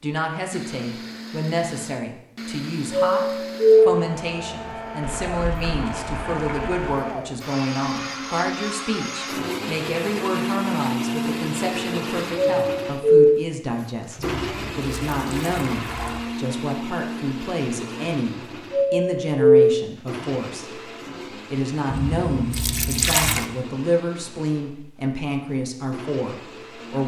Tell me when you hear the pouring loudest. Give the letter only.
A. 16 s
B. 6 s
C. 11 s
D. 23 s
D.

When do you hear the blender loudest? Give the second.
11 s.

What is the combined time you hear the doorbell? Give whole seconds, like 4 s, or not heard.
3 s.